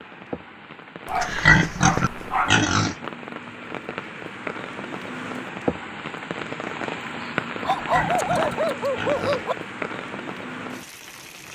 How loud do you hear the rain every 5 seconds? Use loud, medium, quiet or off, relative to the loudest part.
medium, loud, medium.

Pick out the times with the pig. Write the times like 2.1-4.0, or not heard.
1.2-3.0, 7.8-9.4.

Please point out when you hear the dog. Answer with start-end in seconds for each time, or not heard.
1.1-2.5, 7.6-9.6.